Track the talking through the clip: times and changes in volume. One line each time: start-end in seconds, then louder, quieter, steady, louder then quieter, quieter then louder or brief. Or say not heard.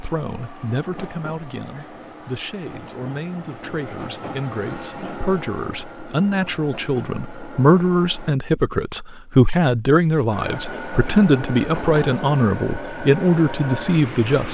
0.0-14.4 louder.